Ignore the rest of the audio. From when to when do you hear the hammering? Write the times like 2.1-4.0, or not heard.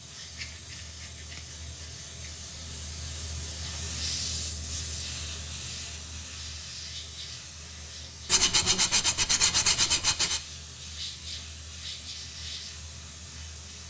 not heard.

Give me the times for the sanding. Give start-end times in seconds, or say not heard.
0.3-2.4, 8.2-10.4.